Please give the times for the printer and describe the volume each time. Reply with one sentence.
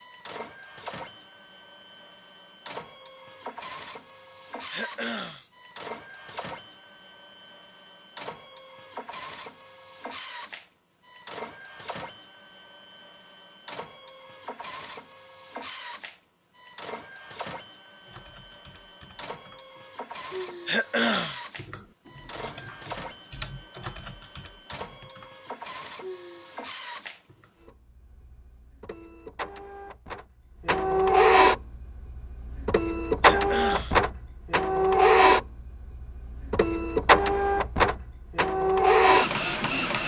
You can hear the printer from 0.0 to 40.0 s, getting louder.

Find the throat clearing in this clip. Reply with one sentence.
You can hear the throat clearing from 4.7 to 5.5 s, from 20.6 to 21.4 s and from 33.2 to 34.0 s.